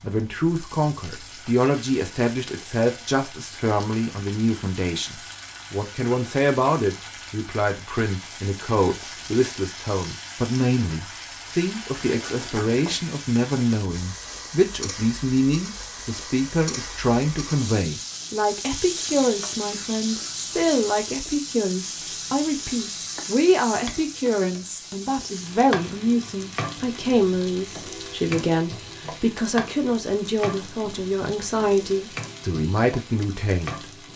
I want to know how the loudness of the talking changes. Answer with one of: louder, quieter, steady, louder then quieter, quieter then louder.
steady.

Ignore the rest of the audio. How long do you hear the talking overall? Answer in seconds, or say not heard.
34 s.